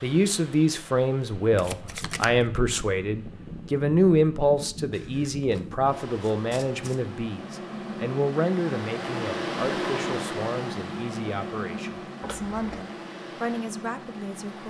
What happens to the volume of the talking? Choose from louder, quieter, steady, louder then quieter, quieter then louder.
quieter.